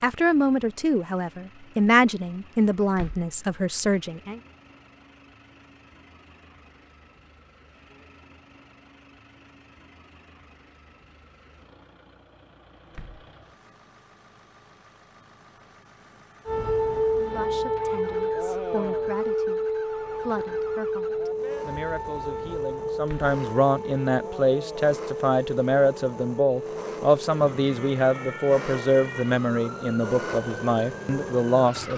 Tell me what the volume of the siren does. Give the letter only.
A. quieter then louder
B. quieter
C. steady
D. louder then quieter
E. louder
B.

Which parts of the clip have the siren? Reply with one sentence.
You can hear the siren from 16.4 to 31.9 s.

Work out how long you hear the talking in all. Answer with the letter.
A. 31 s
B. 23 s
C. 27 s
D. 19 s
D.